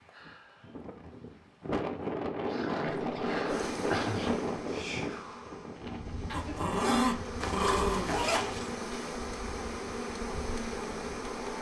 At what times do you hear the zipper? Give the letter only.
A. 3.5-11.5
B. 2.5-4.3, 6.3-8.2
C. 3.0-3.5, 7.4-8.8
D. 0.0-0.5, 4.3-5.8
C.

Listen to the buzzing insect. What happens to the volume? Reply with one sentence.
The loudness of the buzzing insect goes down, then up.